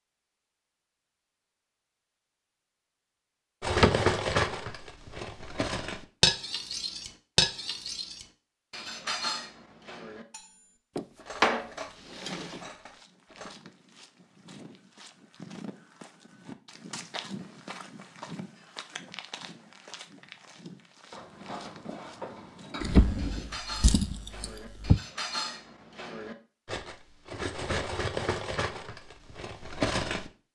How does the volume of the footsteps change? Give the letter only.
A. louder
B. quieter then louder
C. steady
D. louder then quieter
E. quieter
D.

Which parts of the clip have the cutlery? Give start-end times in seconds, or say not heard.
3.6-13.5, 21.1-30.3.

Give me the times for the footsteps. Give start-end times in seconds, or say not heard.
11.8-22.9.